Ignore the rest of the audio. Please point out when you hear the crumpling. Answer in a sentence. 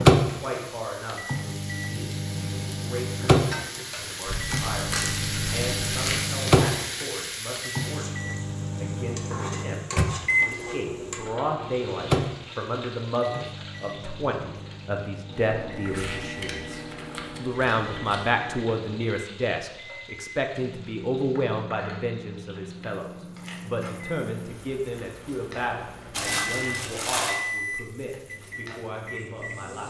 The crumpling can be heard from 4.2 to 6.2 s, from 15.8 to 18.3 s and from 26.1 to 27.4 s.